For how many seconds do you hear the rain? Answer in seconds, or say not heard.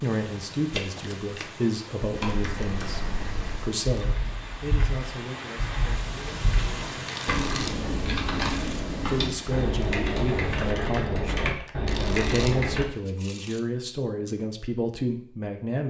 11 s.